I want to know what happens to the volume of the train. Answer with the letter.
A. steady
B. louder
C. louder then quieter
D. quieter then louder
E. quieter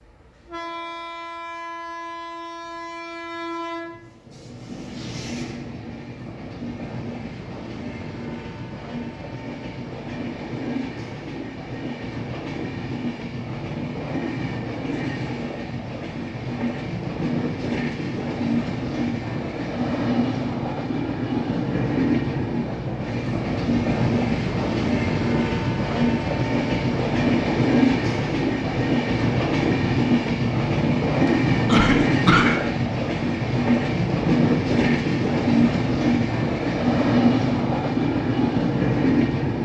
B.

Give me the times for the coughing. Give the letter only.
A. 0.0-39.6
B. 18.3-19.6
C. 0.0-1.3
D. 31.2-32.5
D.